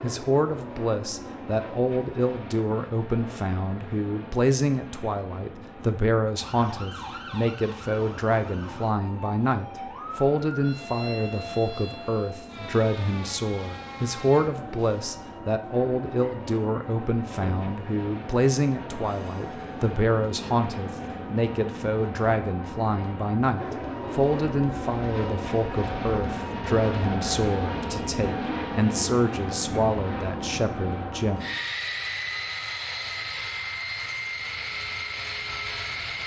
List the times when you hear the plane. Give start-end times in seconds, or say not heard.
0.0-36.2.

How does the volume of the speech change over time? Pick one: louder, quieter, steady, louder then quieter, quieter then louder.
steady.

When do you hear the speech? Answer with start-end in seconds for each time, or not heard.
0.0-31.4.